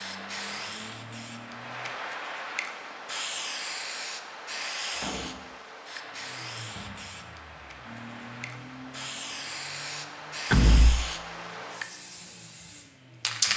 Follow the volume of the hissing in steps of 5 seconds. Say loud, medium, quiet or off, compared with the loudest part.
loud, medium, loud.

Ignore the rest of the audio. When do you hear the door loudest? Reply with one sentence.
The loudest moment of the door is at 11 seconds.